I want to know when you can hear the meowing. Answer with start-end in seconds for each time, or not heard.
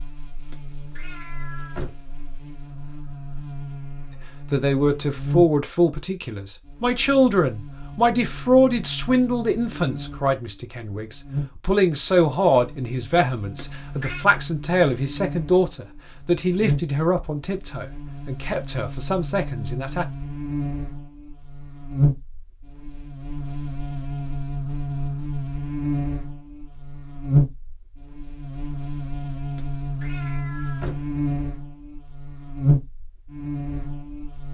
0.5-2.0, 13.6-14.2, 29.6-31.1.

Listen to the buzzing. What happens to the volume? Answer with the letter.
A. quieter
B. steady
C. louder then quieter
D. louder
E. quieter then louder
D.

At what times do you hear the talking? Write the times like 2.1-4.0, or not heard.
4.5-20.1.